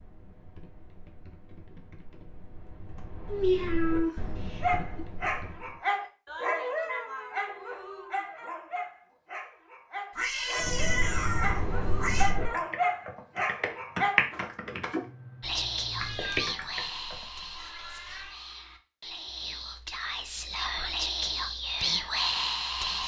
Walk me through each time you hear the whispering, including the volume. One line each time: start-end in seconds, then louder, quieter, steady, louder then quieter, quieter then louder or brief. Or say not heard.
15.4-23.0 quieter then louder.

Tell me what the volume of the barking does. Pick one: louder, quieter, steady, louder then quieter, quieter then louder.
quieter then louder.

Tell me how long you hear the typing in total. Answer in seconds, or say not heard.
13 s.